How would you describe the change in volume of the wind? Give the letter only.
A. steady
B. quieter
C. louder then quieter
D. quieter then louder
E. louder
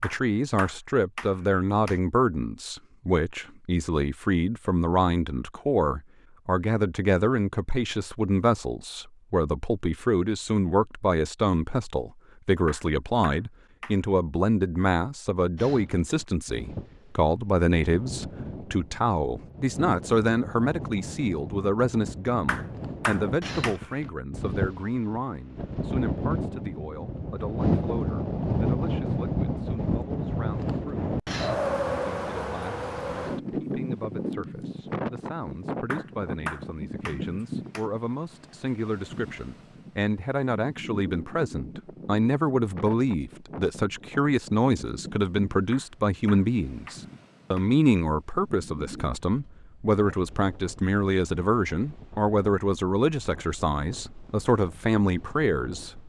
C.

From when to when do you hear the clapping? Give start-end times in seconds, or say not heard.
0.0-2.0, 12.7-14.1, 22.4-23.9, 35.9-37.9, 45.7-47.7.